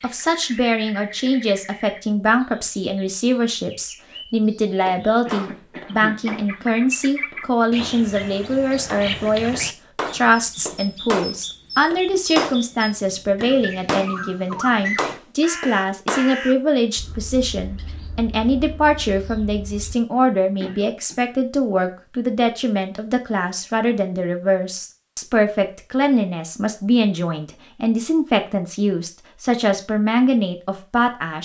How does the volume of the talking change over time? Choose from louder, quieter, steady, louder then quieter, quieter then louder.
steady.